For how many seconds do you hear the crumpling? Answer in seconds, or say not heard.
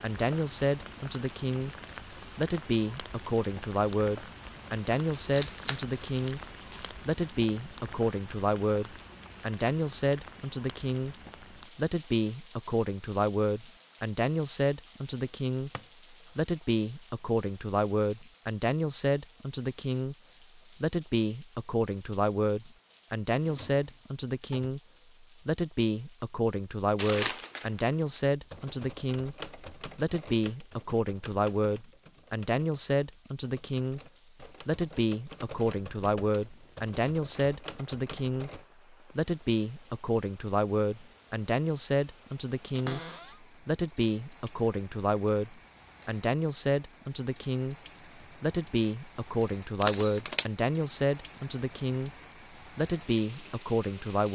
4 s.